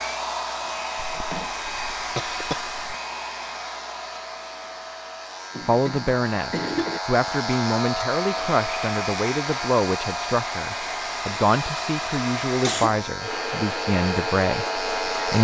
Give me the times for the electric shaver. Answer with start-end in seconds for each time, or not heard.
0.0-15.3.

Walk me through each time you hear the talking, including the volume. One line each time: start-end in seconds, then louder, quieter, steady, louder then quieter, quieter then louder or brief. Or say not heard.
5.7-15.3 steady.